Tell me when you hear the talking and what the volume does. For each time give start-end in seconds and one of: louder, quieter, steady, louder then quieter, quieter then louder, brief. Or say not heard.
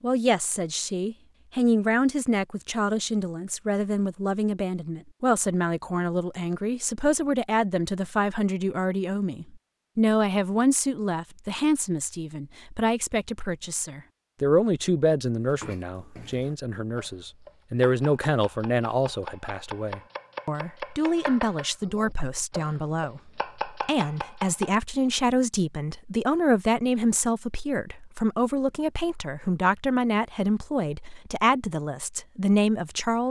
0.0-33.2 steady.